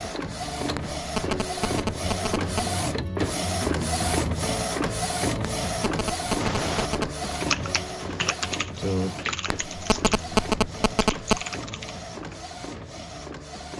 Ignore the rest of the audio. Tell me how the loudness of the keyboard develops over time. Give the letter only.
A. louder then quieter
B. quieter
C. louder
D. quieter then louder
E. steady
B.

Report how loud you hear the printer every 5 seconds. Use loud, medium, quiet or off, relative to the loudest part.
loud, loud, medium.